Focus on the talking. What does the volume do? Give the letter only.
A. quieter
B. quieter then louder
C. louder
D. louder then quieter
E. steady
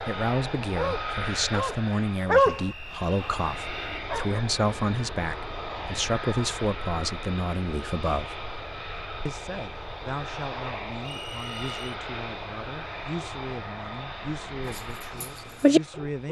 A.